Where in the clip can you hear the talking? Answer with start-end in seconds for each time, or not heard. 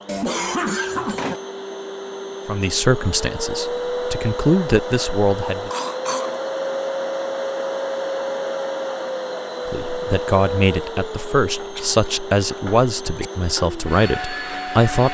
2.5-5.7, 9.7-15.0.